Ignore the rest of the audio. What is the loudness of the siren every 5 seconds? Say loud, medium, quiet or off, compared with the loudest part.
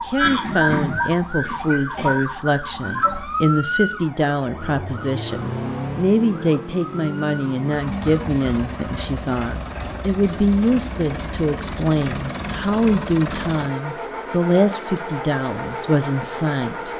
loud, quiet, off, off.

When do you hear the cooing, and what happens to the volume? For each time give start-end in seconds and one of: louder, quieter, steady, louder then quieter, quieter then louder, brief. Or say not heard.
not heard.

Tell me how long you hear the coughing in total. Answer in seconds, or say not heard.
2 s.